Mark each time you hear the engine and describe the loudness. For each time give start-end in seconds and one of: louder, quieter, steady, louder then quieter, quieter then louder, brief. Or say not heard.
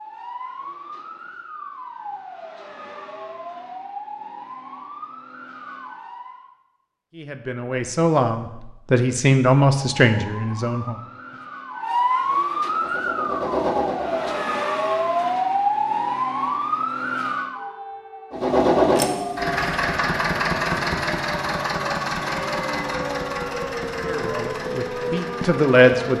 12.7-14.7 brief
18.3-26.1 quieter.